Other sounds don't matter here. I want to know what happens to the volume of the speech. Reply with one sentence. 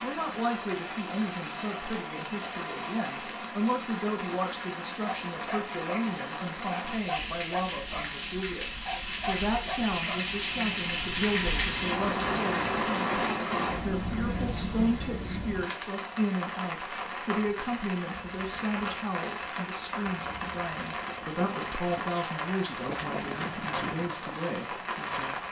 The volume of the speech stays about the same.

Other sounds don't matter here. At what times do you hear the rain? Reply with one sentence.
You can hear the rain from 0.0 to 25.4 s.